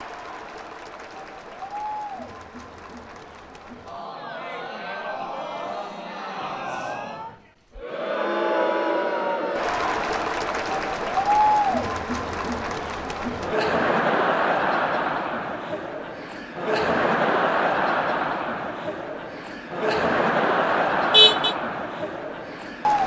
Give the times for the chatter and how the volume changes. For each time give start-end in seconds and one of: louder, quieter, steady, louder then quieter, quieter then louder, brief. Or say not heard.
0.0-23.0 louder.